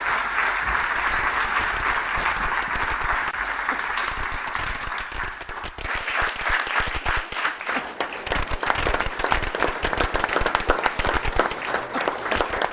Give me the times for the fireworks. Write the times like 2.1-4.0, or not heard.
0.9-12.6.